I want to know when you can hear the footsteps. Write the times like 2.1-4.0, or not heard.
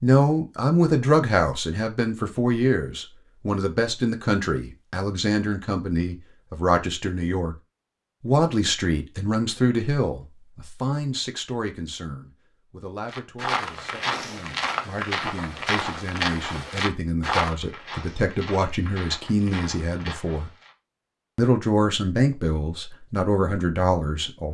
13.1-20.8.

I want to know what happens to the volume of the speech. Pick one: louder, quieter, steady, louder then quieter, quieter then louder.
quieter then louder.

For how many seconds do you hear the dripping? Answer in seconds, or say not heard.
not heard.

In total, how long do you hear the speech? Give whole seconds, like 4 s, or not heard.
23 s.